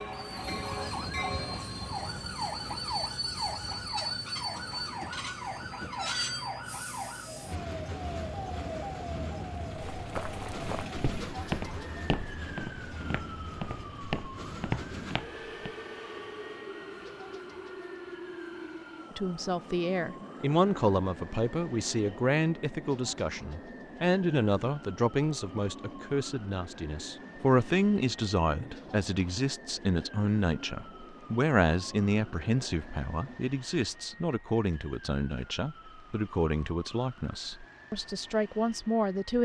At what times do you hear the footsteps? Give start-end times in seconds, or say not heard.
9.8-15.8.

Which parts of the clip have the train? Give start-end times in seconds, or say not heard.
0.0-33.4.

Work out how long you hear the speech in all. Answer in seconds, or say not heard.
20 s.